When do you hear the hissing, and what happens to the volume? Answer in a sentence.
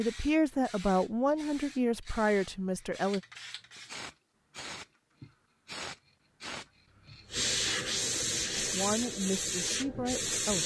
You can hear the hissing from 0.0 to 10.6 s, getting louder.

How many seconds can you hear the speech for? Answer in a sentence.
The speech can be heard for 5 seconds in total.